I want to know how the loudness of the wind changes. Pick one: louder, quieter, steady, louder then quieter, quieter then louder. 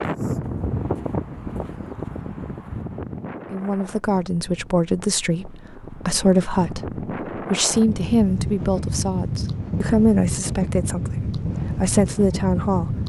quieter then louder.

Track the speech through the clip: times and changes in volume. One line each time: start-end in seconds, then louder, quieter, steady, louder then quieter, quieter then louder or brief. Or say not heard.
3.5-12.9 steady.